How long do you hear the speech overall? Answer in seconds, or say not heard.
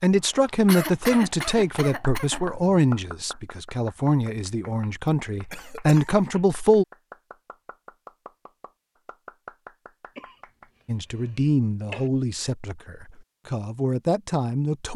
11 s.